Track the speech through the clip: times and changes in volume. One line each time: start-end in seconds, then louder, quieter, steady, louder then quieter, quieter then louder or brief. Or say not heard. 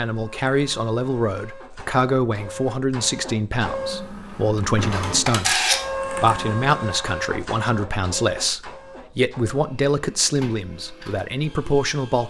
0.0-12.2 steady.